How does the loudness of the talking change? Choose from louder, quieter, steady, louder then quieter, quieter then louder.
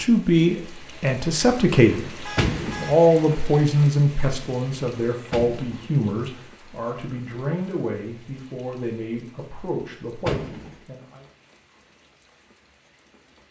quieter.